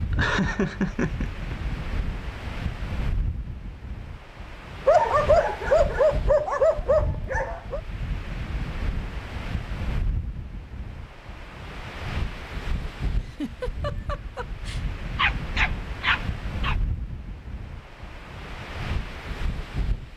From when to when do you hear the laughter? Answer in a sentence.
The laughter can be heard from 0.1 to 1.6 s and from 13.2 to 14.8 s.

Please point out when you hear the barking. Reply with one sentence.
The barking can be heard from 4.8 to 7.8 s and from 15.2 to 16.8 s.